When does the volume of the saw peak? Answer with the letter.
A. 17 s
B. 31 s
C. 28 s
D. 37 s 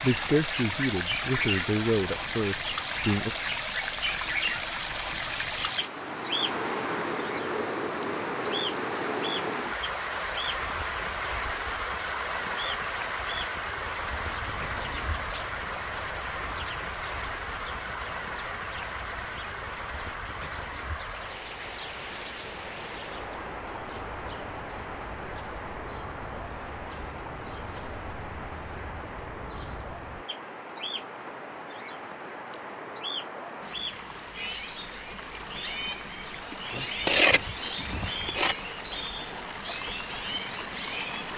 D.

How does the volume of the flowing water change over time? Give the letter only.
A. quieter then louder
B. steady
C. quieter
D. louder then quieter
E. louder
C.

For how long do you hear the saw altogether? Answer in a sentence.
The saw can be heard for 2 seconds in total.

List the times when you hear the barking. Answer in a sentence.
You can't hear the barking here.